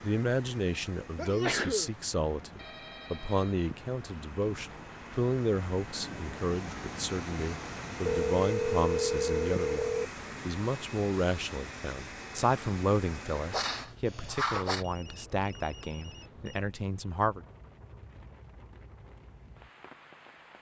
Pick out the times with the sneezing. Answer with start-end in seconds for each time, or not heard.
1.1-1.9, 13.5-14.8.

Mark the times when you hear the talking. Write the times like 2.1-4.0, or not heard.
0.0-17.4.